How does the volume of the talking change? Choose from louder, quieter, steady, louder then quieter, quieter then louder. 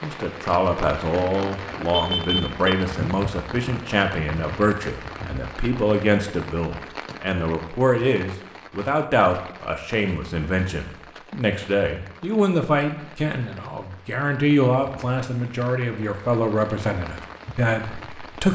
steady.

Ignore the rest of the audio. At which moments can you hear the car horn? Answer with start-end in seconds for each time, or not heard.
1.9-2.7.